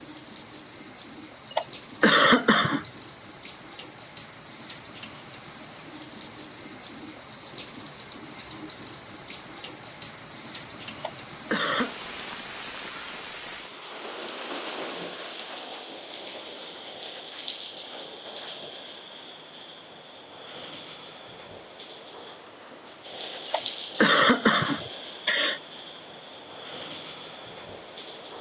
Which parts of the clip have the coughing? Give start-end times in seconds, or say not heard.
1.5-2.9, 11.0-12.0, 23.4-25.6.